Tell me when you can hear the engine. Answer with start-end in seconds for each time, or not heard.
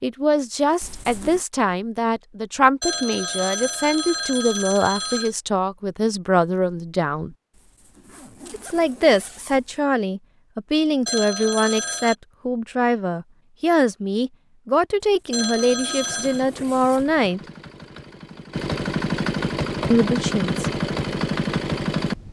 15.9-22.2.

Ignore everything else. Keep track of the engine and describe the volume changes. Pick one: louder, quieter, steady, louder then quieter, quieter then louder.
louder.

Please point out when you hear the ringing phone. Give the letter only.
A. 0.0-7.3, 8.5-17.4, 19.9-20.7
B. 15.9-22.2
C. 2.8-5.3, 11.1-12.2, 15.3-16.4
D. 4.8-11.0
C.